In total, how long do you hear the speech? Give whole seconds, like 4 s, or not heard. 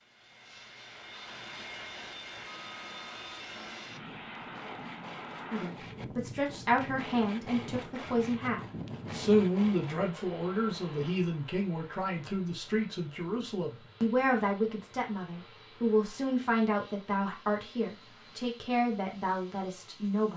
15 s.